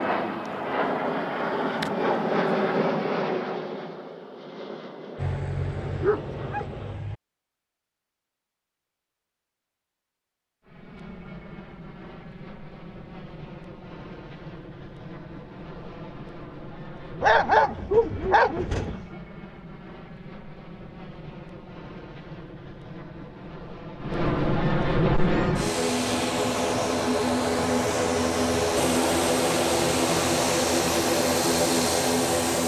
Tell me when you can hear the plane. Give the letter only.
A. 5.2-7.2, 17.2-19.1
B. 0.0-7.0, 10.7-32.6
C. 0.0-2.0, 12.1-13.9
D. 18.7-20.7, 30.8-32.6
B.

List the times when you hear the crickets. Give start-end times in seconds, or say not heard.
not heard.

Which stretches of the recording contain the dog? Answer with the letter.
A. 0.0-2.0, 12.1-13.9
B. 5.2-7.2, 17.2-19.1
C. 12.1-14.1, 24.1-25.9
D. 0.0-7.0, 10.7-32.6
B.